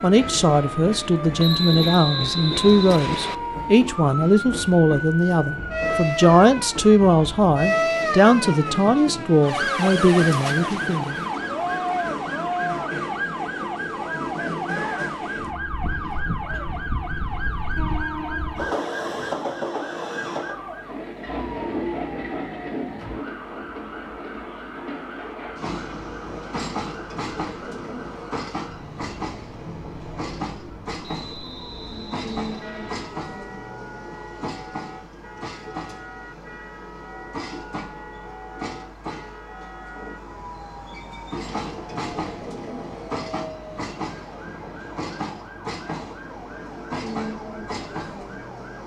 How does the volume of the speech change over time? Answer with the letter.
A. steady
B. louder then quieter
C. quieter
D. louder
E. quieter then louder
A.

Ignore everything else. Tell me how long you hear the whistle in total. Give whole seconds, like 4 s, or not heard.
4 s.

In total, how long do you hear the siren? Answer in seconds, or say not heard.
49 s.